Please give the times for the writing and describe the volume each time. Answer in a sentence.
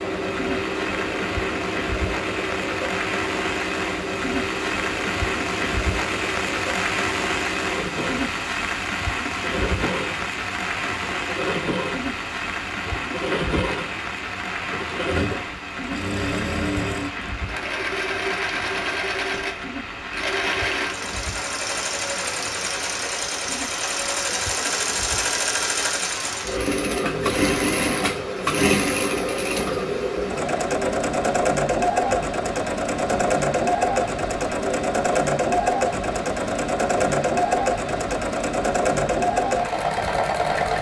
You can't hear the writing here.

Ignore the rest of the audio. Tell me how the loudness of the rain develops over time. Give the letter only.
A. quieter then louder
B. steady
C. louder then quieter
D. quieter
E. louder
D.